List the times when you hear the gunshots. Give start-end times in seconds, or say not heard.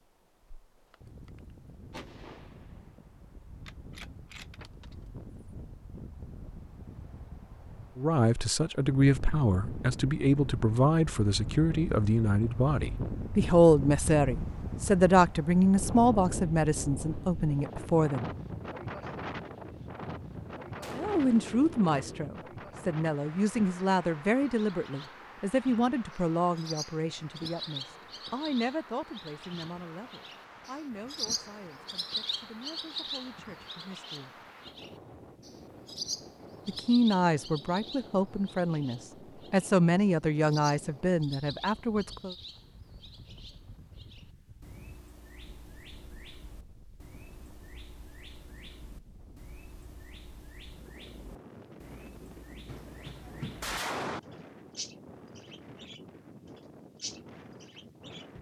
0.9-5.0, 20.3-22.3, 52.6-54.2.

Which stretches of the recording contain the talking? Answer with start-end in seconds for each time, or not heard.
8.0-18.2, 20.9-34.3, 36.6-42.4.